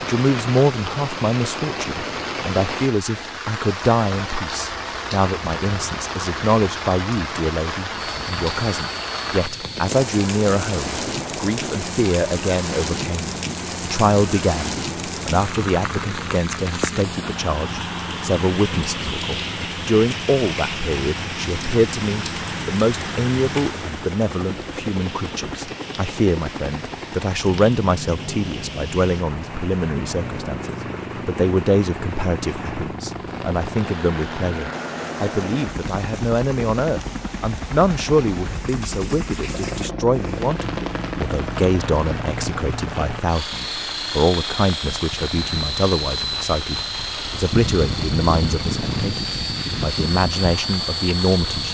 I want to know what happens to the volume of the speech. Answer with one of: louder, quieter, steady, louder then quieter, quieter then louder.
steady.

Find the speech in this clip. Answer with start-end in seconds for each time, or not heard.
0.0-51.6.